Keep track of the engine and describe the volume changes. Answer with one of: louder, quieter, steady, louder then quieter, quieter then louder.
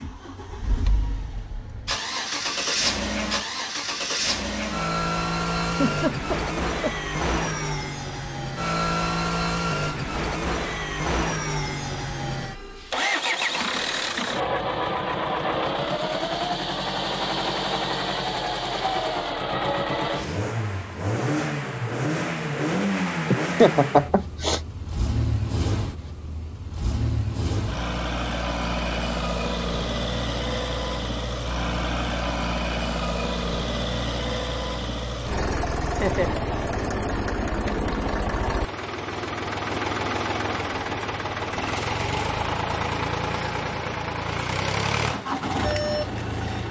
steady.